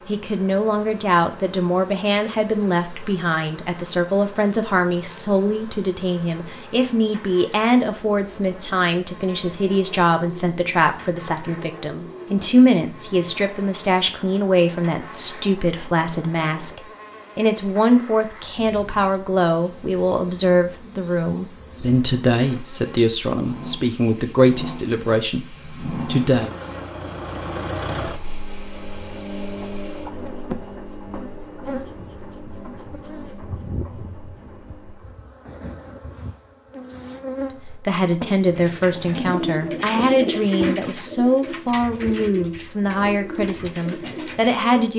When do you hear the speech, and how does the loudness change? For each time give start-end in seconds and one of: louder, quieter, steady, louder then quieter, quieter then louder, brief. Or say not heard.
0.1-26.5 steady
37.6-44.9 steady.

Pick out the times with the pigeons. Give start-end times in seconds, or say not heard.
38.5-44.6.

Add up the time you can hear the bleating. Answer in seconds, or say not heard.
not heard.